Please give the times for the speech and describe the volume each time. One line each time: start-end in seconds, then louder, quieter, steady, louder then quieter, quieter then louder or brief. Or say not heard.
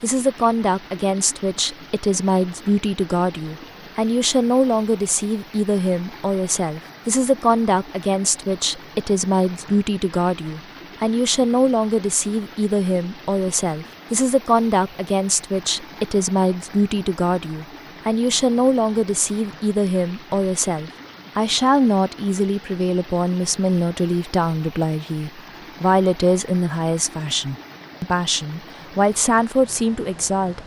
0.0-30.6 steady.